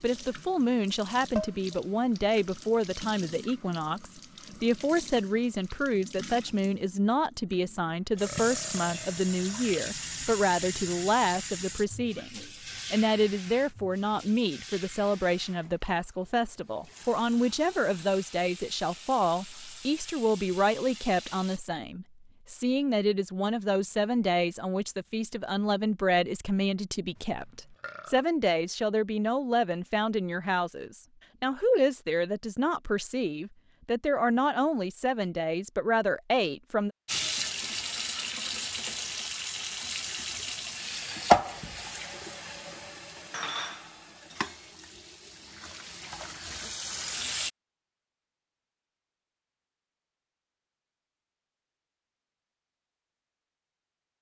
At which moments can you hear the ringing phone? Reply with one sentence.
The ringing phone can't be heard in this clip.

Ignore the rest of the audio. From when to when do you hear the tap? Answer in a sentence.
You can hear the tap from 0.0 to 21.6 s and from 37.0 to 47.5 s.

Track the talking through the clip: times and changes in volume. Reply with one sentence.
You can hear the talking from 0.0 to 36.9 s, at a steady volume.